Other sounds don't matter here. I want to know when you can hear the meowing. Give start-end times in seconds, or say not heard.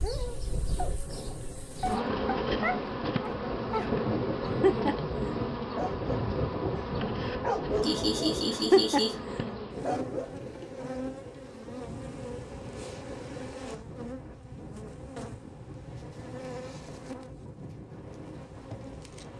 not heard.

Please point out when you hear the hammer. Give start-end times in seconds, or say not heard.
not heard.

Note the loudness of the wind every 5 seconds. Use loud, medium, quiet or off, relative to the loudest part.
loud, loud, medium, medium.